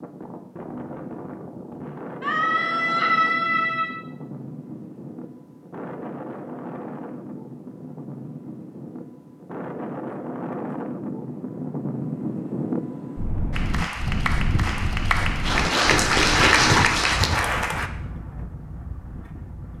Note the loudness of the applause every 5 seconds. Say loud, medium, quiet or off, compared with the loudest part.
off, off, medium, loud.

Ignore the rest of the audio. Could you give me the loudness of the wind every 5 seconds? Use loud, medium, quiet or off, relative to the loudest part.
medium, medium, loud, medium.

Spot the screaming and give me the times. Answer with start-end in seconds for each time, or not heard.
2.2-4.0.